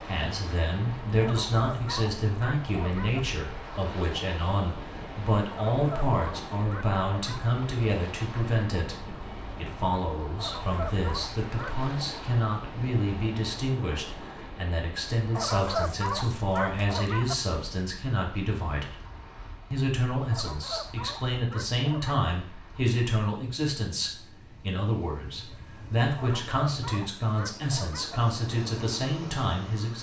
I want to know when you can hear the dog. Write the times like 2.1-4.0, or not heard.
1.2-3.2, 5.5-7.5, 10.3-11.8, 15.3-17.4, 20.3-22.2, 26.1-28.2.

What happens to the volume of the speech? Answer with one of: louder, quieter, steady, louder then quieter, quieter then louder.
steady.